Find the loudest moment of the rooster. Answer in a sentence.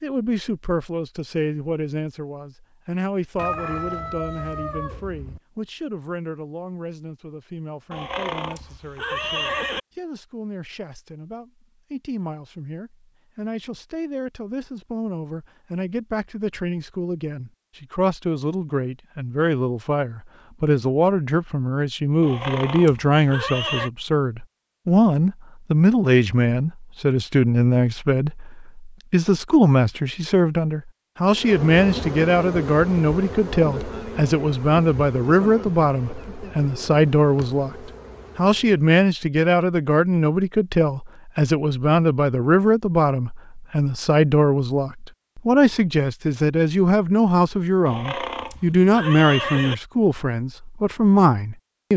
The loudest moment of the rooster is at 4 seconds.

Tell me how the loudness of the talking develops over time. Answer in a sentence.
The loudness of the talking goes up.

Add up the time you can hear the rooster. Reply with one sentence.
You can hear the rooster for 2 seconds altogether.